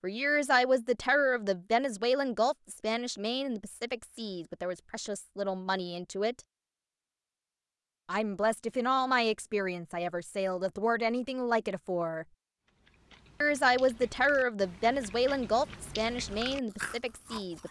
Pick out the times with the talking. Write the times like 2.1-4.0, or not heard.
0.0-6.4, 8.1-12.2, 13.4-17.6.